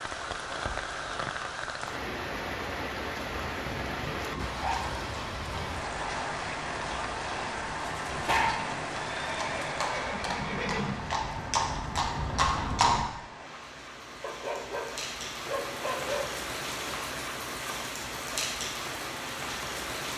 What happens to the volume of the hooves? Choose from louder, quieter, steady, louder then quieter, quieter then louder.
louder.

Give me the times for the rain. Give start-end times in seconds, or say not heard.
0.0-20.1.